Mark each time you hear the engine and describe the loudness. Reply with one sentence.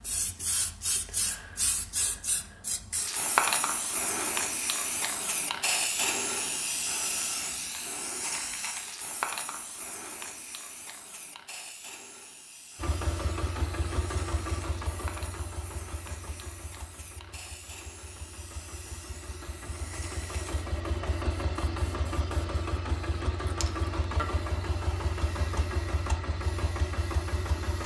You can hear the engine from 12.8 to 27.8 s, getting quieter then louder.